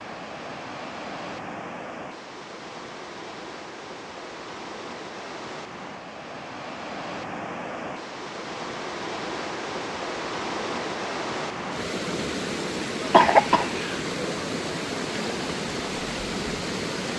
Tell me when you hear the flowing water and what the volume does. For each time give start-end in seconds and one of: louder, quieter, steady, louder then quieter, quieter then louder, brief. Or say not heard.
0.0-17.1 louder.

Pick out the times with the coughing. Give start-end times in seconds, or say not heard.
13.1-14.0.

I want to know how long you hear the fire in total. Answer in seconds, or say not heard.
not heard.